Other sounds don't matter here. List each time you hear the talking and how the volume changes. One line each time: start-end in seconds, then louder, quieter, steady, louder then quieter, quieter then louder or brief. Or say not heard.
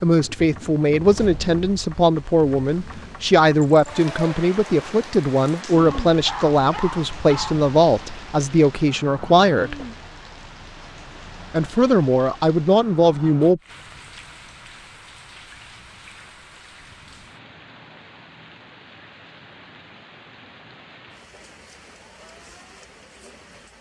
0.0-9.8 steady
11.5-13.6 brief.